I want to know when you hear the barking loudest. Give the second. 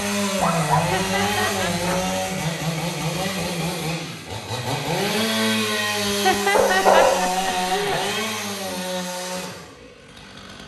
7 s.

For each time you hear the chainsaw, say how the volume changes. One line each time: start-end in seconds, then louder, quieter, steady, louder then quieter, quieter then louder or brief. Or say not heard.
0.0-10.6 quieter.